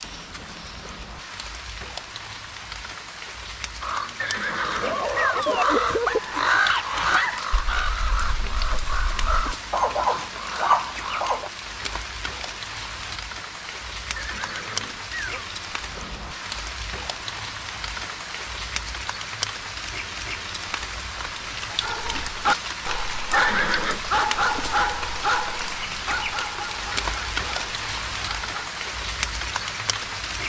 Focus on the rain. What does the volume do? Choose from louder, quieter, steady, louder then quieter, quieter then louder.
louder.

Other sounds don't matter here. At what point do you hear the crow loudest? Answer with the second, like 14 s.
7 s.